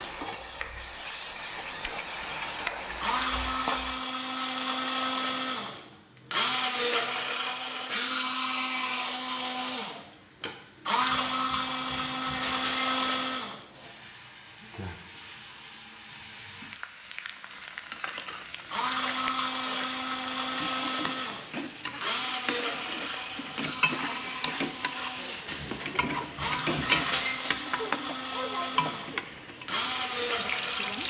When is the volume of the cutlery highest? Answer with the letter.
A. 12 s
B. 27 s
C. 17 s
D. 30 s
B.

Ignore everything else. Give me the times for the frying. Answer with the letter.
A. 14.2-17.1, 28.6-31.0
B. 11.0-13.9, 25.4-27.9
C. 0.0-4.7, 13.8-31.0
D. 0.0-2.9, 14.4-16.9
C.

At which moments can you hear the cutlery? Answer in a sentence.
The cutlery can be heard from 11.0 to 13.9 s and from 25.4 to 27.9 s.